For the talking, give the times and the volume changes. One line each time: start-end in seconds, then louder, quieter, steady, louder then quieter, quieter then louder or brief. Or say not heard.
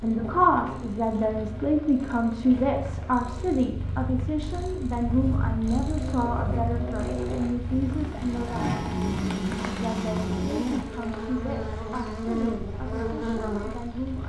0.0-8.7 quieter
9.7-14.2 quieter.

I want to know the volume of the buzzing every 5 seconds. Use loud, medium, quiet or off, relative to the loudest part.
medium, loud, loud.